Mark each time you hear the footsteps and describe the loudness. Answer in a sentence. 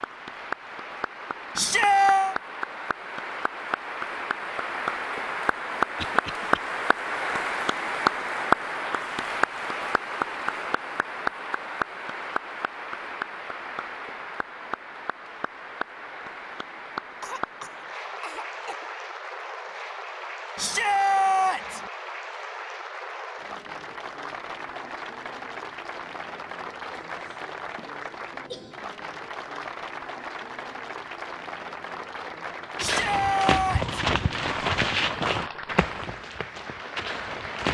The footsteps can be heard from 32.8 to 37.6 s, getting quieter.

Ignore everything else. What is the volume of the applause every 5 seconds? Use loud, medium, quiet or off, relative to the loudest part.
medium, loud, medium, medium, medium, medium, medium, medium.